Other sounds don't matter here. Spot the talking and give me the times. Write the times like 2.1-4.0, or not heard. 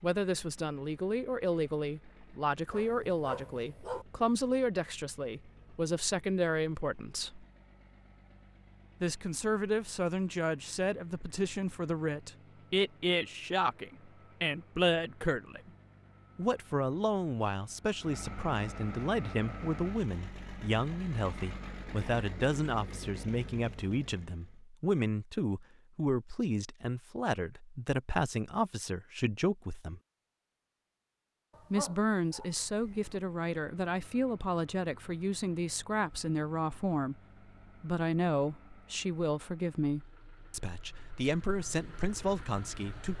0.0-7.5, 9.0-15.7, 16.4-30.0, 31.7-37.2, 37.8-43.1.